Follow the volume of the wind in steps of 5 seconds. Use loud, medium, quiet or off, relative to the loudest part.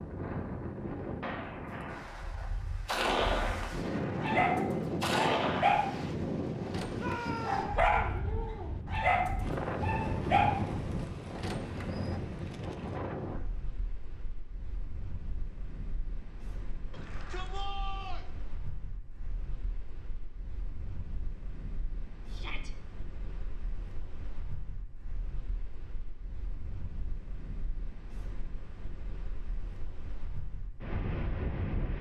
loud, loud, loud, quiet, quiet, quiet, loud.